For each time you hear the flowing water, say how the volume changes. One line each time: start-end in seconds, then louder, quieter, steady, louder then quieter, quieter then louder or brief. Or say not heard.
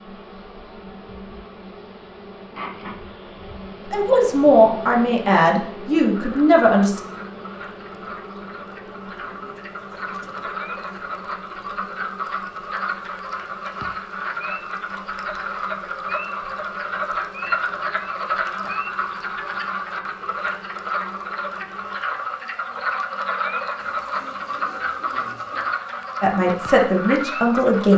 not heard.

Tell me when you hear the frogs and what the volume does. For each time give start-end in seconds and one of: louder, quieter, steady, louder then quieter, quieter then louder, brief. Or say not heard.
6.2-27.9 louder.